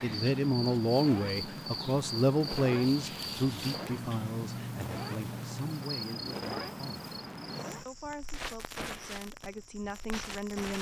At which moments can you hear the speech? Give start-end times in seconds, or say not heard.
0.0-7.1, 7.8-10.7.